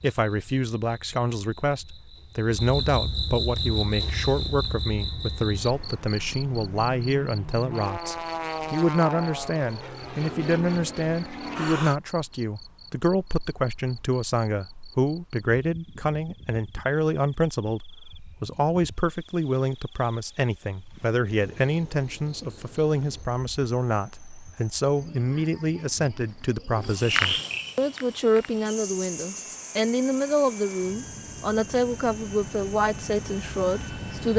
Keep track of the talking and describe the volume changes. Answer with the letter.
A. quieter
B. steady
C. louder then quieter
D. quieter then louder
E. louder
B.